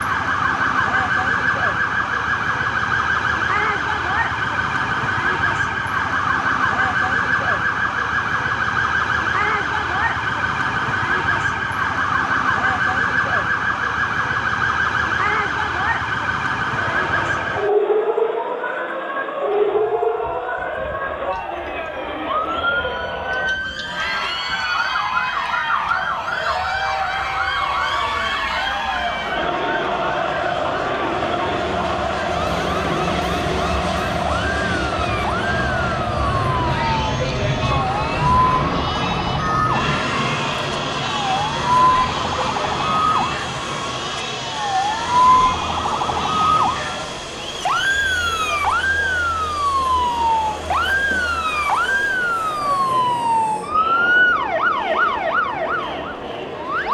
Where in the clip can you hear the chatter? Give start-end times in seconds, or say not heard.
16.8-56.8.